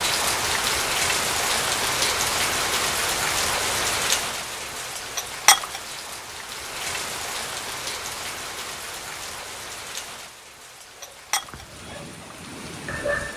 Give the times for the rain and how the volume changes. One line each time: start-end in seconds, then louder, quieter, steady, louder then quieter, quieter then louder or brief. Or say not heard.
0.0-13.3 quieter.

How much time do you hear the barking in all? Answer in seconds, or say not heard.
2 s.